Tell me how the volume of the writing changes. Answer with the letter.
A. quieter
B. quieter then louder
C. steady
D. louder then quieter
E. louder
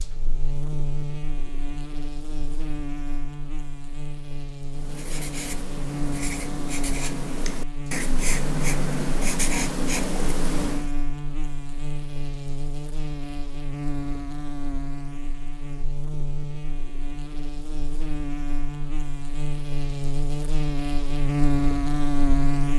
E.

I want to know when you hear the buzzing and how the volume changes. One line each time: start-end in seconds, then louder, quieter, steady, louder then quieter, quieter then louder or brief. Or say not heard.
0.0-22.7 louder.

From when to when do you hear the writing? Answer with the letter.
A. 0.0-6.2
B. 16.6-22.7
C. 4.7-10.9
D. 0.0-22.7
C.